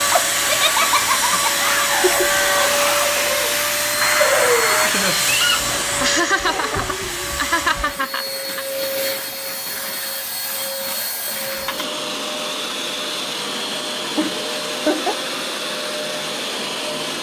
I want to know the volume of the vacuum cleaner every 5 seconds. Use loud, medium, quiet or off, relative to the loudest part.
loud, medium, medium, medium.